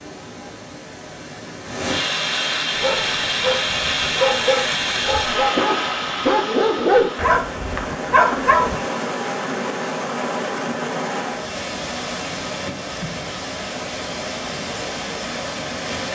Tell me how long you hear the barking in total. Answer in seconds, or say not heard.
6 s.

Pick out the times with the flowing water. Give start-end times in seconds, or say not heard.
0.0-16.0.